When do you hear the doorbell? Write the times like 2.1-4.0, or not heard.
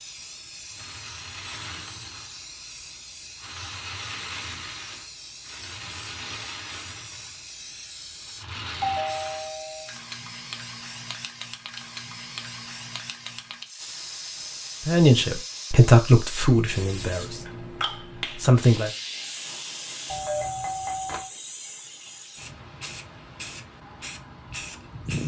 8.8-9.9, 20.1-21.3.